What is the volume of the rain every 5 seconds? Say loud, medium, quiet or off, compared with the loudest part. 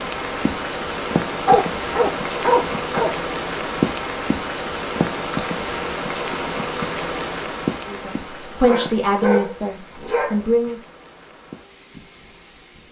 loud, loud, quiet.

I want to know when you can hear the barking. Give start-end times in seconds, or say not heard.
1.4-3.1, 8.6-10.4.